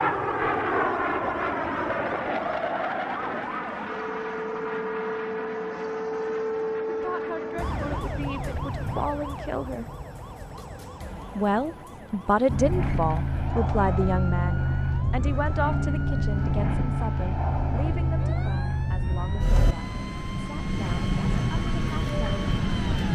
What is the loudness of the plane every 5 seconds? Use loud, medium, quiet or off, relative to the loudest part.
loud, medium, loud, loud, loud.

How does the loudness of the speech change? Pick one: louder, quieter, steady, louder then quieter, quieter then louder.
louder then quieter.